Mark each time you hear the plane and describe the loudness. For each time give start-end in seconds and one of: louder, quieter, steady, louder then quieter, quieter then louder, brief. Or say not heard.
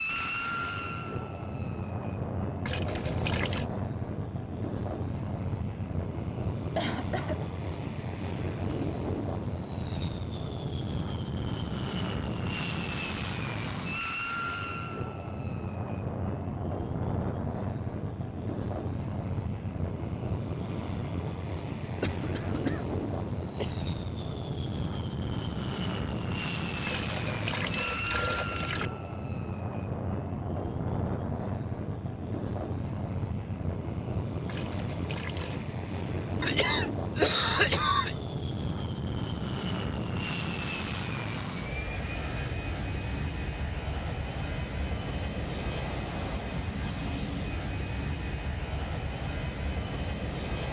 0.0-50.6 steady.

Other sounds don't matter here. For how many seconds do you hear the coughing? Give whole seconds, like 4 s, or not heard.
4 s.